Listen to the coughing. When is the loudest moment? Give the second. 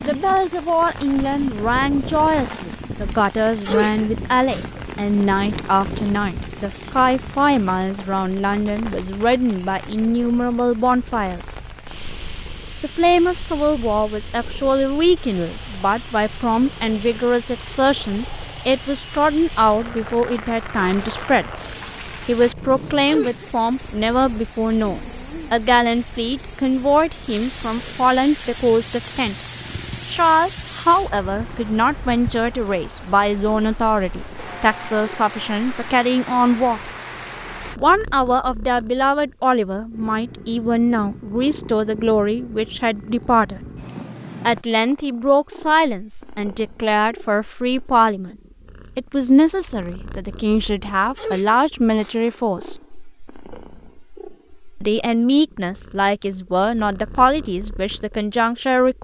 4 s.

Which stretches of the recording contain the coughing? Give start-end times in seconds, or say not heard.
3.6-4.8, 23.1-23.5, 51.1-52.3.